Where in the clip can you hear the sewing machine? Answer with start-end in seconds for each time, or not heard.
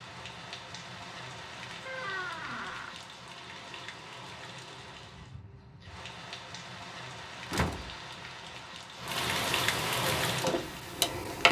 10.0-11.4.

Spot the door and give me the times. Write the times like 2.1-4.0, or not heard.
1.9-3.0, 7.5-8.6.